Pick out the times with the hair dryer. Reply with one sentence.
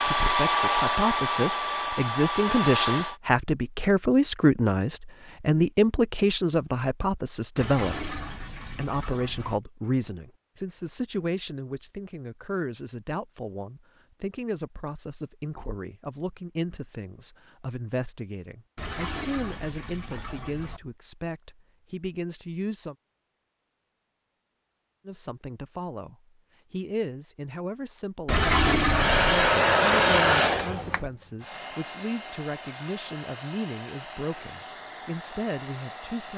The hair dryer can be heard from 0.0 to 3.1 s and from 28.8 to 36.3 s.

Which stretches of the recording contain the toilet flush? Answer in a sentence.
The toilet flush can be heard from 7.5 to 9.6 s, from 18.8 to 20.8 s and from 28.2 to 29.6 s.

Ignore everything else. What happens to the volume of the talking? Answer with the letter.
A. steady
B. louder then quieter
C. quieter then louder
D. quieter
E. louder
D.